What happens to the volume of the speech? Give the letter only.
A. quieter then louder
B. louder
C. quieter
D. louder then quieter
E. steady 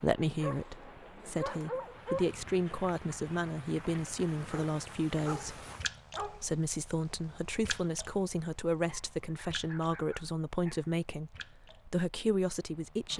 E.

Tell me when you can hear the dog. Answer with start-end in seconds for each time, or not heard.
0.4-2.4, 4.5-6.5, 8.8-10.9.